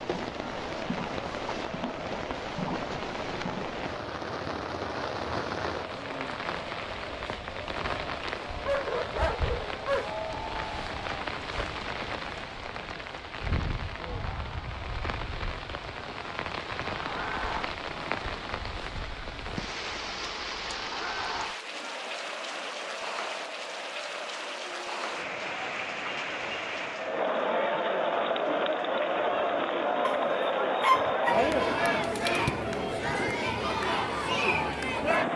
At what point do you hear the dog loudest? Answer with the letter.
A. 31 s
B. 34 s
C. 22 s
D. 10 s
A.